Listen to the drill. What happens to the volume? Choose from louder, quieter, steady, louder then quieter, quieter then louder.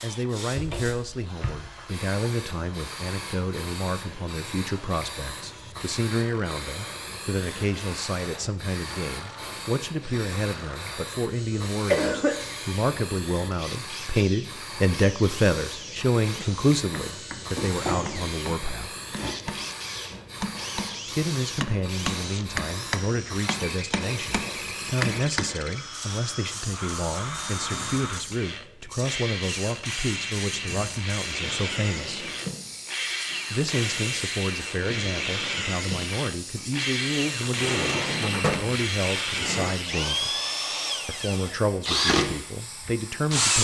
louder.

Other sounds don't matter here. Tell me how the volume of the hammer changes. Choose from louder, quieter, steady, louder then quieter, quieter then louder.
louder.